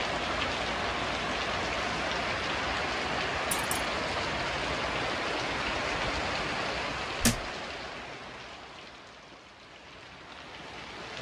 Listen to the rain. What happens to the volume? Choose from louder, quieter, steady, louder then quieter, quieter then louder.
quieter.